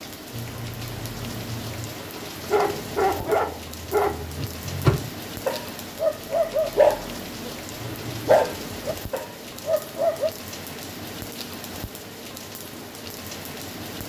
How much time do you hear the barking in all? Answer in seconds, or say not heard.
8 s.